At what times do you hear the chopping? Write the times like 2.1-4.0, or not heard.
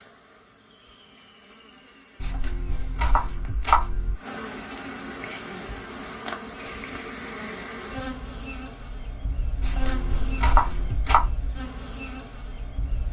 2.2-4.2, 9.6-11.3.